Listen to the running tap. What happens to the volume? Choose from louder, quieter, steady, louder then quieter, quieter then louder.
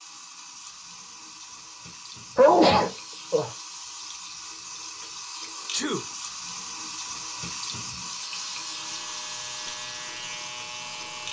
louder.